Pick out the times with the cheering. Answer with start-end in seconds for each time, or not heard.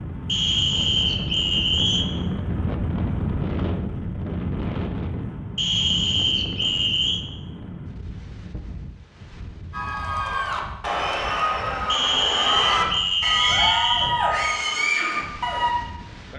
9.7-15.8.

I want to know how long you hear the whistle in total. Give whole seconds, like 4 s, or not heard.
6 s.